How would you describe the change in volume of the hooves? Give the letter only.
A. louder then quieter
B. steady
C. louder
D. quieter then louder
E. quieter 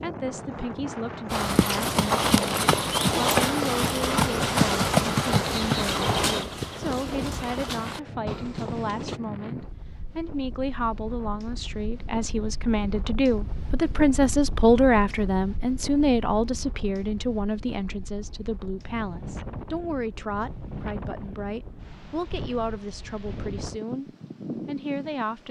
E.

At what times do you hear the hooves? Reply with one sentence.
The hooves can be heard from 1.3 to 9.2 s.